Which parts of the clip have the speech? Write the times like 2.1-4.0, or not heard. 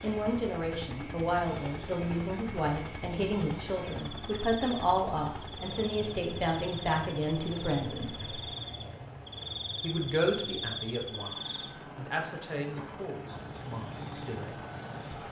0.0-8.4, 9.8-14.7.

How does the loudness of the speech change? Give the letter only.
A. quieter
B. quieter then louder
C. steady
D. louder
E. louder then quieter
A.